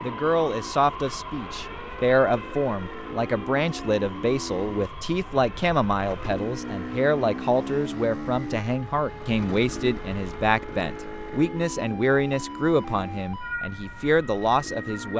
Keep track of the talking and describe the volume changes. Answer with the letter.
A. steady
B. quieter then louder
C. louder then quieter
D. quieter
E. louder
A.